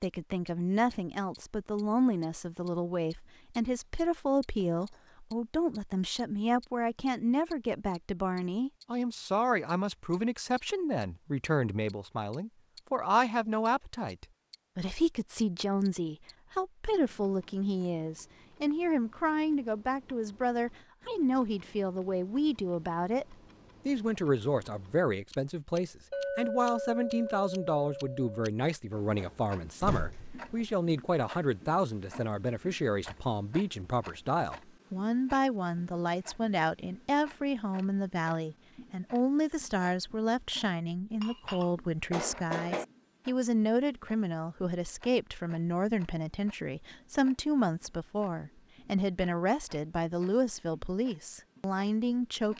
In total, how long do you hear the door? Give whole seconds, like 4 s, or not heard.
2 s.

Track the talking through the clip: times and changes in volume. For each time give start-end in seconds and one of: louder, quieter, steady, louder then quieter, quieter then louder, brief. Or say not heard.
0.0-52.5 steady.